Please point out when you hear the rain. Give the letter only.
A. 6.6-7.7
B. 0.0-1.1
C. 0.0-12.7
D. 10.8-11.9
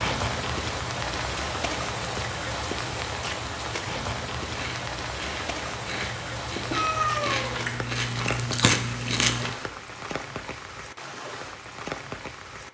C.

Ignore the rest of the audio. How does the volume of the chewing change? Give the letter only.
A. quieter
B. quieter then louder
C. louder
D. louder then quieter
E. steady
C.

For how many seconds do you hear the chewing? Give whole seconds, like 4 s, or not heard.
5 s.